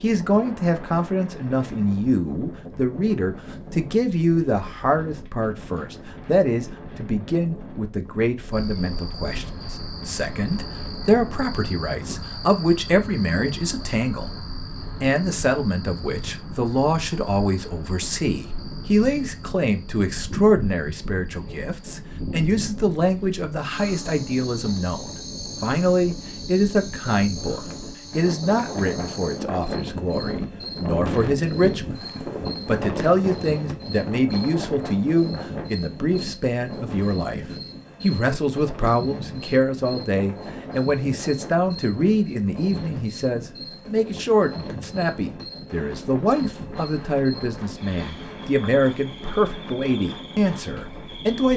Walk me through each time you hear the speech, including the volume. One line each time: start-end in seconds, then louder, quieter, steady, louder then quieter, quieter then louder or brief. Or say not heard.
0.0-14.3 steady
15.0-32.0 steady
32.6-37.4 quieter
38.0-51.5 steady.